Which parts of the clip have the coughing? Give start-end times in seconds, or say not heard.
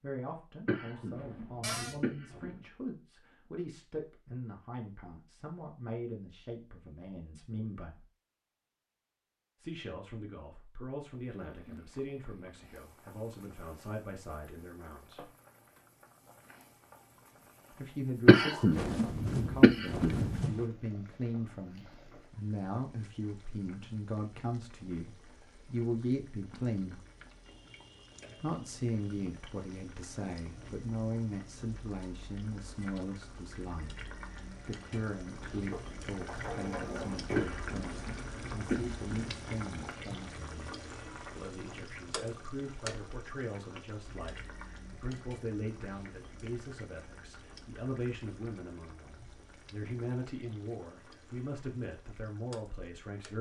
0.7-2.6, 18.2-20.6, 37.4-39.4.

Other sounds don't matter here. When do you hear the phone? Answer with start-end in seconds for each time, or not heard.
not heard.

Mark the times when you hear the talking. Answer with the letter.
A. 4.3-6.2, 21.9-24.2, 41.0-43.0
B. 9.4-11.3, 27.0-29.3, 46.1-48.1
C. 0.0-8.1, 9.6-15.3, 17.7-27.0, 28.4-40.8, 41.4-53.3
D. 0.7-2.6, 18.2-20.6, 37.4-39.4
C.